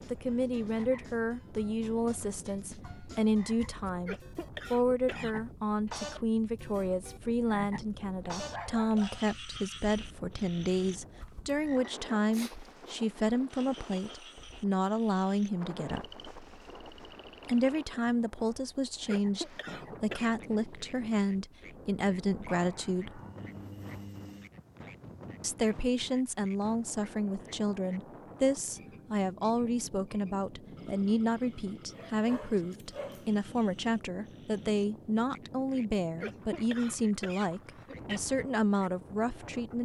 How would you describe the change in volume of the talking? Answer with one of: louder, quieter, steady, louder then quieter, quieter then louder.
steady.